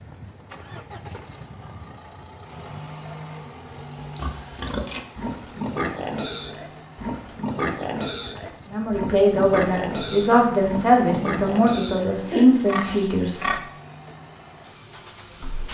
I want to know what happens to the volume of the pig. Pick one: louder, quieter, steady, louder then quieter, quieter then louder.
steady.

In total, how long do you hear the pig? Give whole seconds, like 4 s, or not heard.
10 s.